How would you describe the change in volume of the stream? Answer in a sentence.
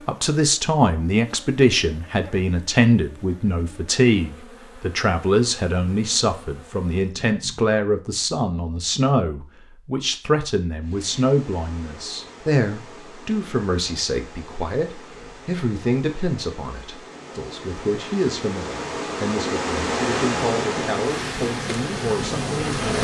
The loudness of the stream goes up.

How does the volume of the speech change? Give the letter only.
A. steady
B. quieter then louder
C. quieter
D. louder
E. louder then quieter
C.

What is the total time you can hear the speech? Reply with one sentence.
The speech can be heard for 23 seconds in total.